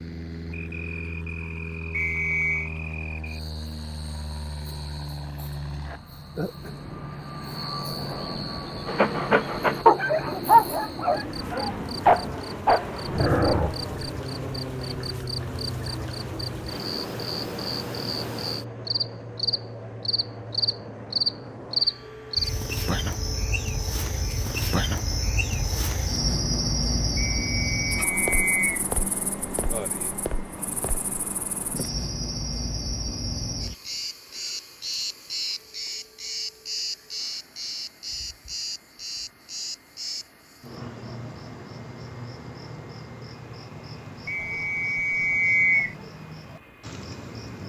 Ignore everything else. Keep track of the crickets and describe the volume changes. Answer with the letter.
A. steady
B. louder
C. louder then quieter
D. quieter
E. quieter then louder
C.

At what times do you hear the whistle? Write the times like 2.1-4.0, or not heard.
1.9-2.7, 27.1-28.9, 44.2-46.0.